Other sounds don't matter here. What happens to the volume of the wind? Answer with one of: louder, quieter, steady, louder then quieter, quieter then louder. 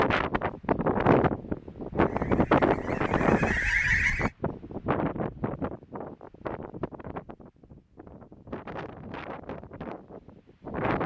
quieter.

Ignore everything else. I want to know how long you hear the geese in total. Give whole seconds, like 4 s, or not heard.
2 s.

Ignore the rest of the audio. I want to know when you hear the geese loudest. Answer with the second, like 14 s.
4 s.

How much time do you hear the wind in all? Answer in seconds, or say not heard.
11 s.